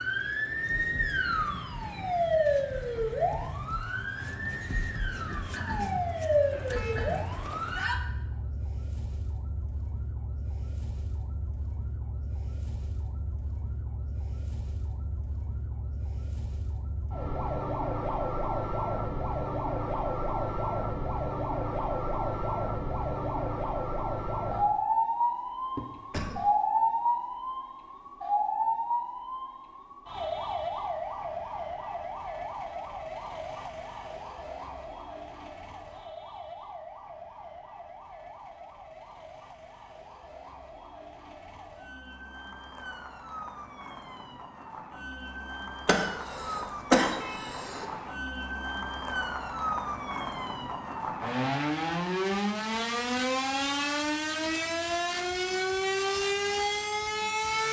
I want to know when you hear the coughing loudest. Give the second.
47 s.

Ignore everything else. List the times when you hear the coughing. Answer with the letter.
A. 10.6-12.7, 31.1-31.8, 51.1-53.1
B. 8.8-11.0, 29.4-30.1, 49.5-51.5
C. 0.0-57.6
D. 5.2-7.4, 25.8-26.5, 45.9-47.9
D.